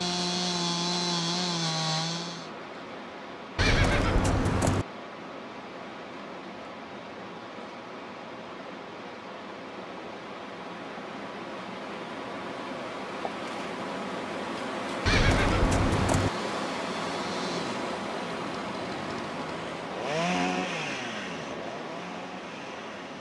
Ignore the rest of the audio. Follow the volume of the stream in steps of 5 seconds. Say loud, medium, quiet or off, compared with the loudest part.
medium, medium, loud, loud, medium.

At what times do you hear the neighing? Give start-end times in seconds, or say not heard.
3.5-4.8, 15.1-16.3.